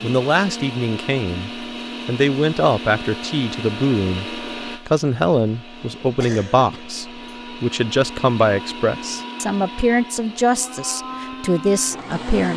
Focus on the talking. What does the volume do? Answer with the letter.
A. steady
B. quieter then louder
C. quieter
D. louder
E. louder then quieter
A.